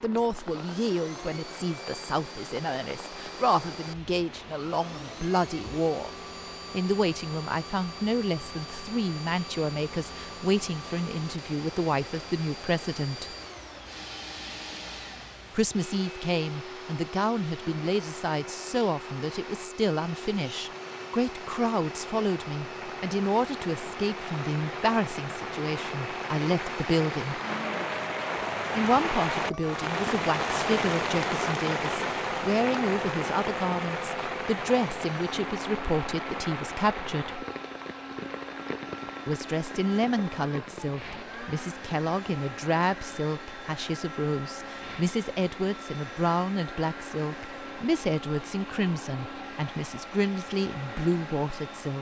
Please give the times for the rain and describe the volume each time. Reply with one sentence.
The rain can be heard from 0.0 to 51.9 s, getting louder then quieter.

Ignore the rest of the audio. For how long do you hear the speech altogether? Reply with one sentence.
The speech can be heard for 46 seconds in total.